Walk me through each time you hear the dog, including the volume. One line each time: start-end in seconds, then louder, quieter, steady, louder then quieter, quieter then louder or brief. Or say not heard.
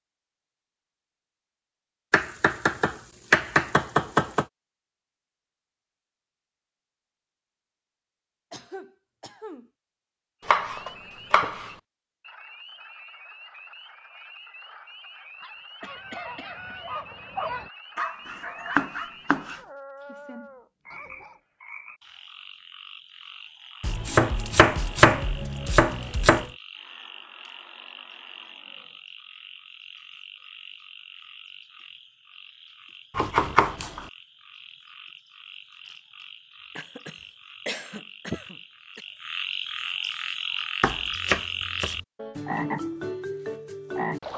15.4-21.4 louder then quieter.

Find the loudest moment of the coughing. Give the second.
38 s.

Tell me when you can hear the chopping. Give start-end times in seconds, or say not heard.
2.1-4.5, 10.4-11.7, 18.3-19.6, 23.8-26.5, 33.1-34.0, 40.8-42.0.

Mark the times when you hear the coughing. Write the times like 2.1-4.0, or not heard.
8.5-9.7, 15.8-16.8, 36.8-39.0.